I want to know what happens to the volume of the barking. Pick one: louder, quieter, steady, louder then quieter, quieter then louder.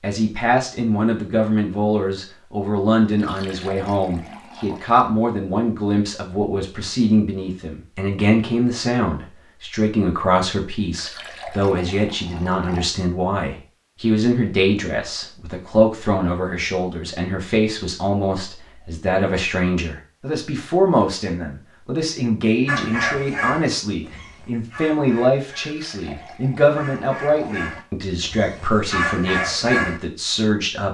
quieter then louder.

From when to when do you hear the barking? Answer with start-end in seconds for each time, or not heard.
22.6-30.0.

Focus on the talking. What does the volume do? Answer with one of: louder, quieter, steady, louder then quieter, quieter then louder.
steady.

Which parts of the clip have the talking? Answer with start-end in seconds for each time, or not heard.
0.0-30.8.